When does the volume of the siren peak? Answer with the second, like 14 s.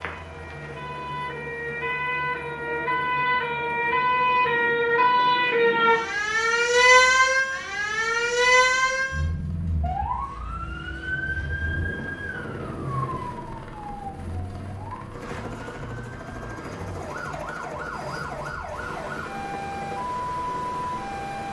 7 s.